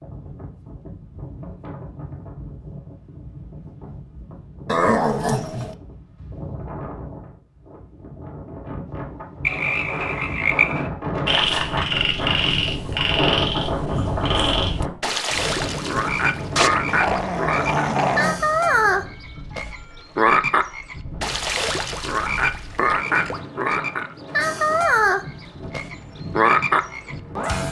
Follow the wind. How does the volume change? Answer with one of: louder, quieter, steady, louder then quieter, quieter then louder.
louder then quieter.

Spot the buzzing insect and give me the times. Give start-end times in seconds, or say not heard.
not heard.